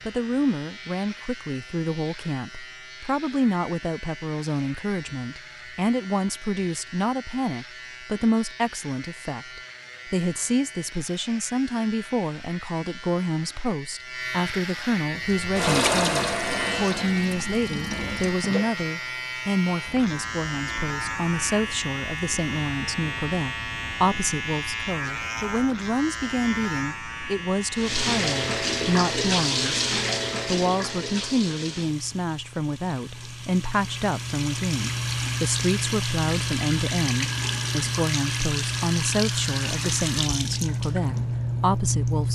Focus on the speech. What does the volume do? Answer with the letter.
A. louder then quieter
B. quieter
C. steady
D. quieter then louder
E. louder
C.